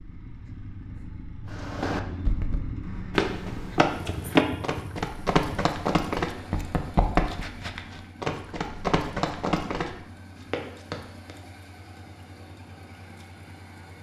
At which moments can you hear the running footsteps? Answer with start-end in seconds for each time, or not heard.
1.5-9.9, 10.5-11.3.